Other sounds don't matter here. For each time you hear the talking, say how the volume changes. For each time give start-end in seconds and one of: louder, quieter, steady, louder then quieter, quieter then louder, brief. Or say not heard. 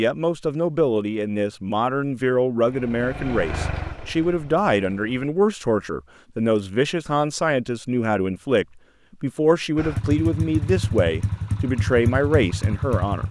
0.0-13.2 steady.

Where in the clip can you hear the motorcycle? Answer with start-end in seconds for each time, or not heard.
2.6-5.2, 9.8-13.2.